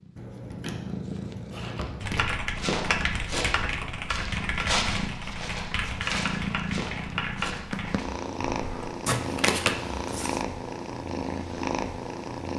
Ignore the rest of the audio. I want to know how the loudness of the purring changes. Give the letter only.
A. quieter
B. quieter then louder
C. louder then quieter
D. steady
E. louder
E.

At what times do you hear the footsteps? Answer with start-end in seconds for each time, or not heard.
2.5-7.8.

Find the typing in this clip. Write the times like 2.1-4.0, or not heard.
2.0-8.8.